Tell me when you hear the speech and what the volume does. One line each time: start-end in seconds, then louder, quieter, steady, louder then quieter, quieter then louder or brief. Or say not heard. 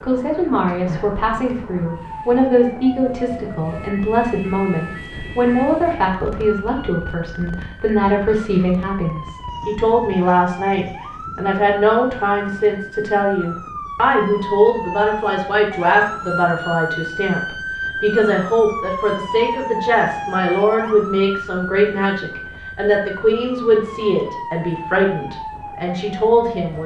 0.0-26.8 steady.